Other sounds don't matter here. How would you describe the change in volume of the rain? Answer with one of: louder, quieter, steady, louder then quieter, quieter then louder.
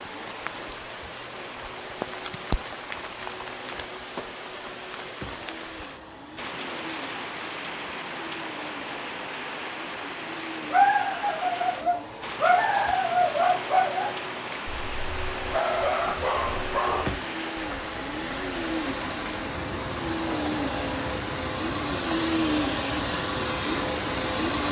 steady.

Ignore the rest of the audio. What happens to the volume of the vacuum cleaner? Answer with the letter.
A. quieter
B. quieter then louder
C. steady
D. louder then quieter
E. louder
E.